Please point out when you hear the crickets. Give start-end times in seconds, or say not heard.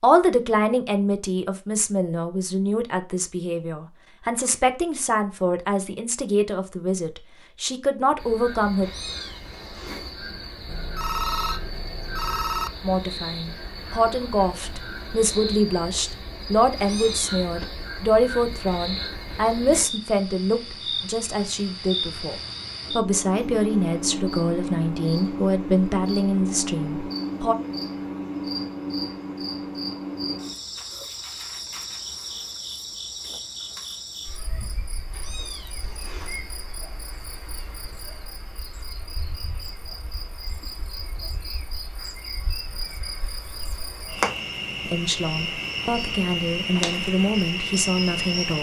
8.2-48.5.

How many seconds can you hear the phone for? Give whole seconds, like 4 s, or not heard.
2 s.